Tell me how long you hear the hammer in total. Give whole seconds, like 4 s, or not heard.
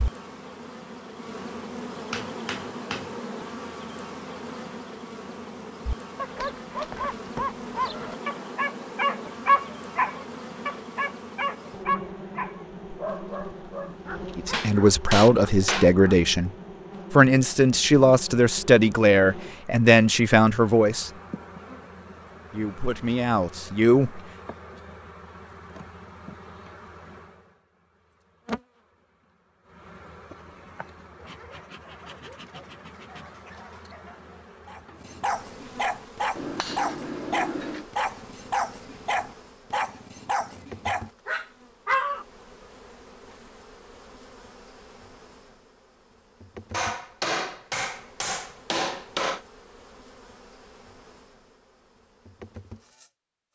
7 s.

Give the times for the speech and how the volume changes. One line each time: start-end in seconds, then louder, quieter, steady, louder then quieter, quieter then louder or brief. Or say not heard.
14.3-16.5 brief
17.1-21.1 steady
22.5-24.2 brief.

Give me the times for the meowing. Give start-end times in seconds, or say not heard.
not heard.